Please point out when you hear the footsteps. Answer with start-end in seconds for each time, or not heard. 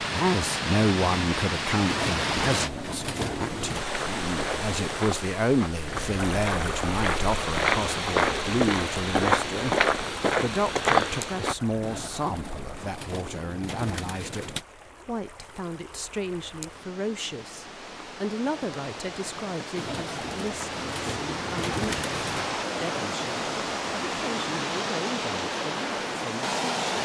3.9-11.6.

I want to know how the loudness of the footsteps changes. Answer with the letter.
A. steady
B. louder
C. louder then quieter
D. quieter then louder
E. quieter
B.